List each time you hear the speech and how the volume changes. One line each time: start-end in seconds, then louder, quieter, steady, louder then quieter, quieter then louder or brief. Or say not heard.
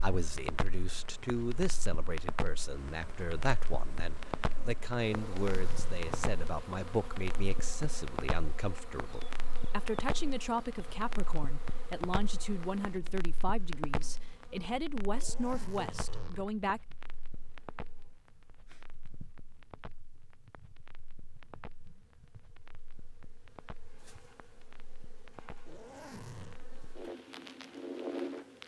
0.0-16.8 steady.